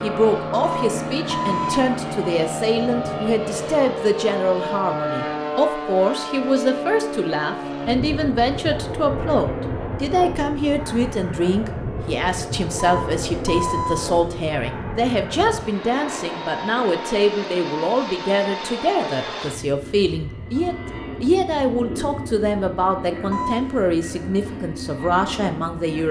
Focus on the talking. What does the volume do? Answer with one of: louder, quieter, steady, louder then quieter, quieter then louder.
steady.